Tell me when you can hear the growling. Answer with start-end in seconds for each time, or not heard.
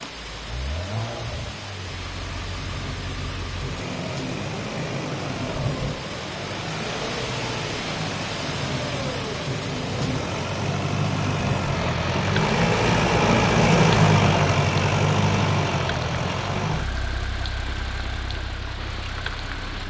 not heard.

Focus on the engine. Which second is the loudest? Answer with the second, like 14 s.
14 s.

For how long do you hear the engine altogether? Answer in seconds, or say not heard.
20 s.